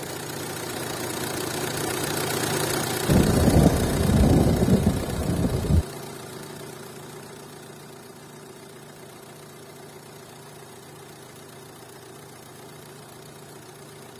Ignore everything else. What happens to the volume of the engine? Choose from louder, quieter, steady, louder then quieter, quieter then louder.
quieter.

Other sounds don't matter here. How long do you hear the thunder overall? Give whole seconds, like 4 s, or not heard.
3 s.